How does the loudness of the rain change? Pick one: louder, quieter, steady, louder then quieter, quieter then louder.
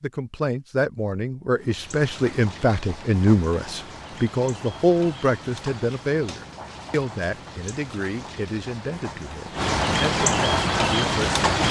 louder.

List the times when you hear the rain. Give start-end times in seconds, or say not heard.
1.6-11.6.